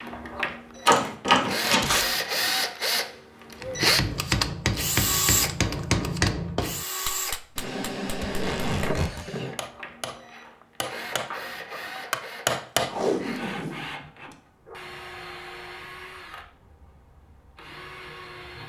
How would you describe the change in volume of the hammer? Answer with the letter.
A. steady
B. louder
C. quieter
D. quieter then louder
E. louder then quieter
D.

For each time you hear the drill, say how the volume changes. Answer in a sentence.
You can hear the drill from 0.0 to 18.6 s, getting quieter.